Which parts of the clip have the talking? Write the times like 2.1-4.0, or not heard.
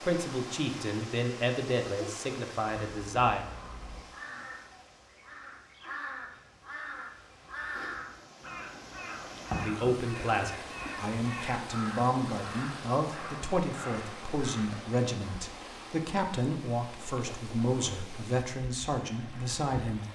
0.0-3.5, 9.5-20.0.